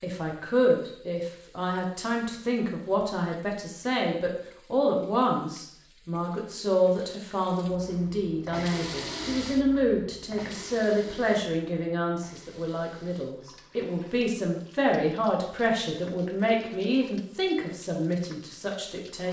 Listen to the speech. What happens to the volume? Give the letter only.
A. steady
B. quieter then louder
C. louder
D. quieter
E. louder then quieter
A.